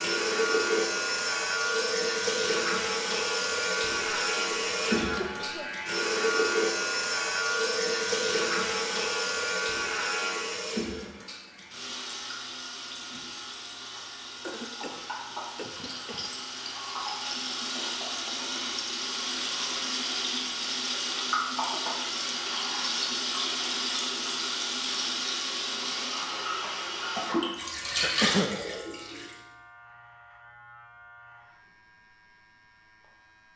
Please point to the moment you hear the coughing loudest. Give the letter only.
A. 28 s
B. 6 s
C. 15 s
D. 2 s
A.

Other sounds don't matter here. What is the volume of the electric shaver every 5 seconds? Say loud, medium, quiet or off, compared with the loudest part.
loud, loud, medium, quiet, quiet, quiet, quiet.